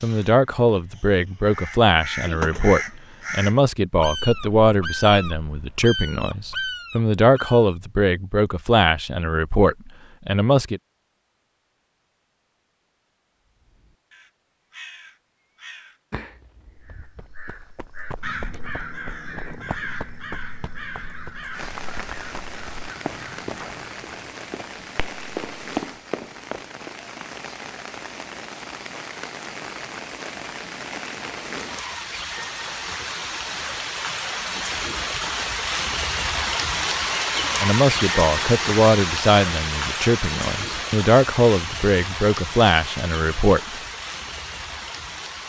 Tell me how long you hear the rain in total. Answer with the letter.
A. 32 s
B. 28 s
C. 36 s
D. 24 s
D.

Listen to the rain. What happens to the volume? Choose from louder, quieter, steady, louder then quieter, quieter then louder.
louder then quieter.